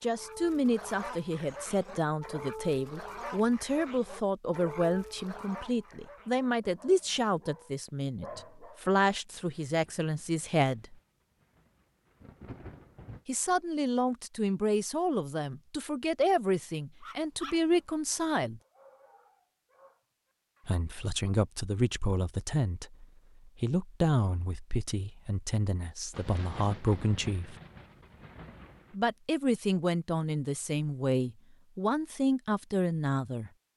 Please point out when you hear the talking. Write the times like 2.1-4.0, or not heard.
0.0-10.9, 13.2-18.6, 20.6-27.6, 28.9-33.5.